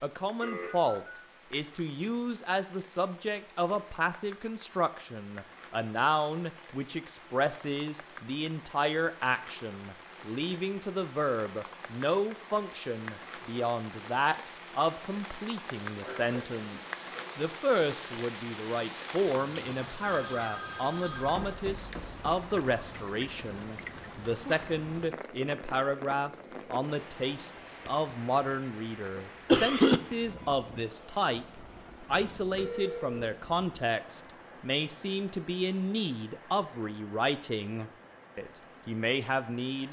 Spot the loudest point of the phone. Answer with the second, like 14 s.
20 s.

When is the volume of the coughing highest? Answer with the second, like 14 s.
30 s.